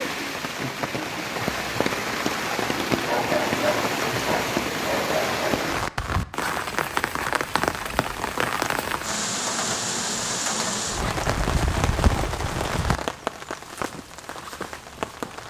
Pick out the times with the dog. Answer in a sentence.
The dog can be heard from 3.0 to 5.7 s.